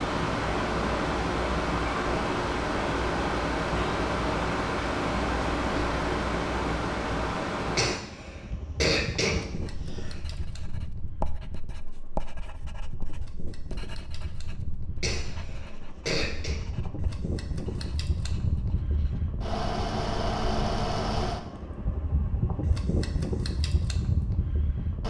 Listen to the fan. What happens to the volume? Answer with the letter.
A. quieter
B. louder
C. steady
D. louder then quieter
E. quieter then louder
E.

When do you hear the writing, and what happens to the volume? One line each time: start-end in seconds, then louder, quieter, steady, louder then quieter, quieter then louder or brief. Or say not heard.
9.5-19.2 quieter.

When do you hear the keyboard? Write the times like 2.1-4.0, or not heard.
not heard.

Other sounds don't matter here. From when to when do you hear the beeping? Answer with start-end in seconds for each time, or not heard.
not heard.